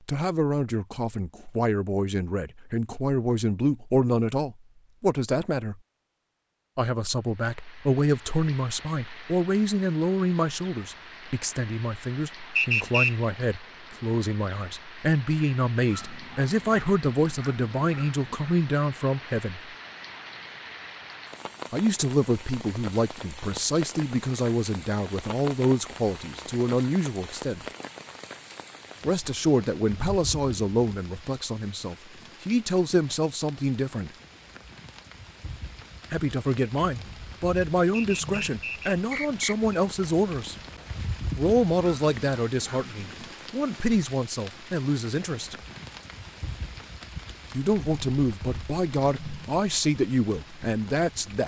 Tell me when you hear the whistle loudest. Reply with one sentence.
The loudest moment of the whistle is at 13 seconds.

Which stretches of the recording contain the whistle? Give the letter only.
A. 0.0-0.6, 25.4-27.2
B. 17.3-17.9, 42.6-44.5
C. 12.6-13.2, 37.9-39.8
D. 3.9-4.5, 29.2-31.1
C.